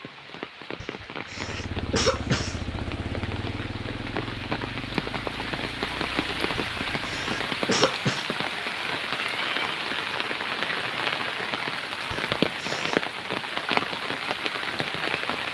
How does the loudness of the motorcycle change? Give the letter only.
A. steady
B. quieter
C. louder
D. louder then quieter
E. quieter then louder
B.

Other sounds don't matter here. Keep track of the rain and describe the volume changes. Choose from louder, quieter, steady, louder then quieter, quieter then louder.
louder.